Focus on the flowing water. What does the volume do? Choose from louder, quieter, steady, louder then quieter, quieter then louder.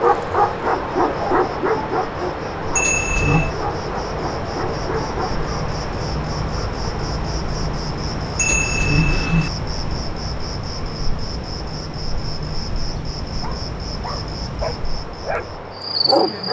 quieter.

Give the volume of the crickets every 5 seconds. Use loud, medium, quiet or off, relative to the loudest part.
medium, loud, loud, loud.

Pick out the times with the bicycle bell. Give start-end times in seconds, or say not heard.
2.8-3.5, 8.3-9.5.